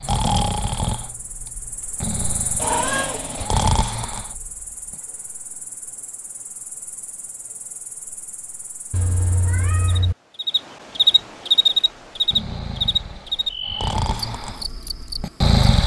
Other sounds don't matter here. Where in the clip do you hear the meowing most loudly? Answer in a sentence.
The loudest moment of the meowing is at 3 seconds.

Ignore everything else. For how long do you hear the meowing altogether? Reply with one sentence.
You can hear the meowing for 2 seconds altogether.